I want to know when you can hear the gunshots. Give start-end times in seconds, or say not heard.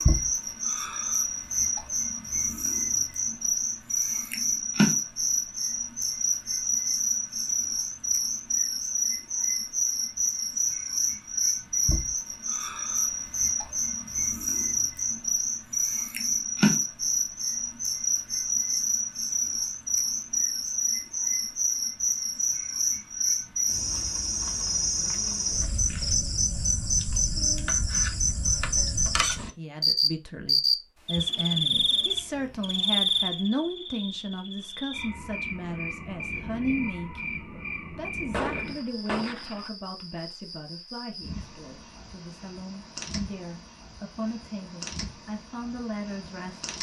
38.3-39.7.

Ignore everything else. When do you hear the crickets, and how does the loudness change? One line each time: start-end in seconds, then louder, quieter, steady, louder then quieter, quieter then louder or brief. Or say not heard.
0.0-46.7 quieter.